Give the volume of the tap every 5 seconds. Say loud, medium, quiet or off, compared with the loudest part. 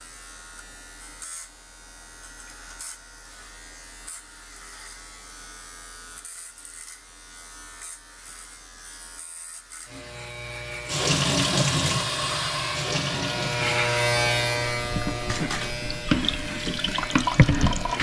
off, off, loud, loud.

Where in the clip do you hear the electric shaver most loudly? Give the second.
14 s.